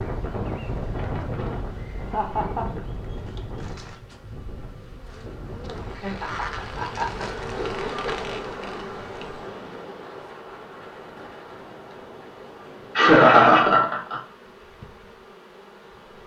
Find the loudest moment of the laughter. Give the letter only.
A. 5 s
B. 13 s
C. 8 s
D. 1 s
B.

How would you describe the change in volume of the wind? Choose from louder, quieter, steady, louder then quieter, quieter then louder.
quieter.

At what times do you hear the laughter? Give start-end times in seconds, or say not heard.
2.0-2.7, 6.0-8.4, 12.9-14.2.